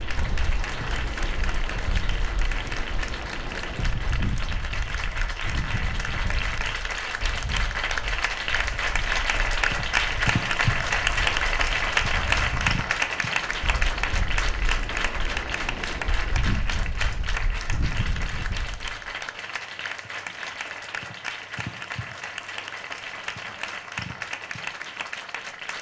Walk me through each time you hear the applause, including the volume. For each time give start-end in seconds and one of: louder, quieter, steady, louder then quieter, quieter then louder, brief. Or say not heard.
0.0-25.7 louder then quieter.